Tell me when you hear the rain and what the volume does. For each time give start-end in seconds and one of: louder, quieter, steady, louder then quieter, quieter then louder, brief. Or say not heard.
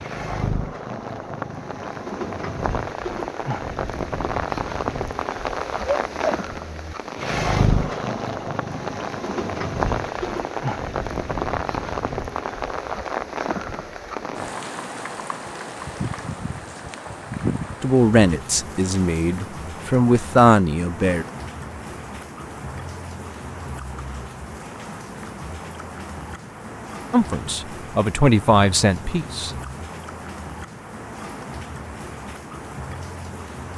0.0-33.7 quieter.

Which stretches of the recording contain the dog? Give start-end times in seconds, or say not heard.
5.8-7.0.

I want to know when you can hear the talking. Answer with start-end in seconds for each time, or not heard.
17.8-21.2, 27.1-29.5.